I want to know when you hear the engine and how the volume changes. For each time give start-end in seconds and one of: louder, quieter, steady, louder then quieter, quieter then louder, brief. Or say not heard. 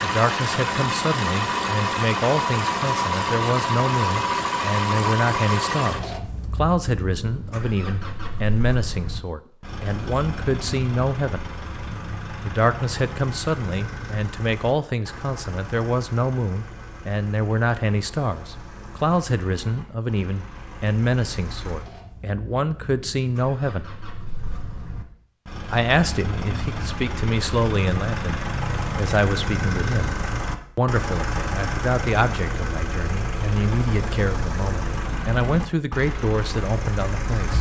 0.0-37.5 quieter then louder.